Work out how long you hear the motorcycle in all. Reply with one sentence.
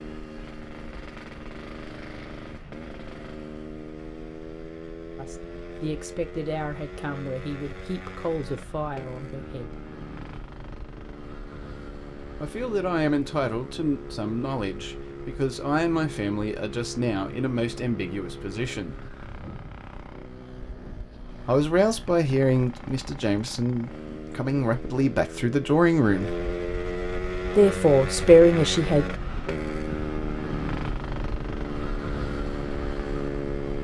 You can hear the motorcycle for 34 seconds altogether.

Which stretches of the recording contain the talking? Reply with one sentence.
The talking can be heard from 5.2 to 9.8 s, from 12.3 to 18.9 s, from 21.4 to 26.4 s and from 27.6 to 29.1 s.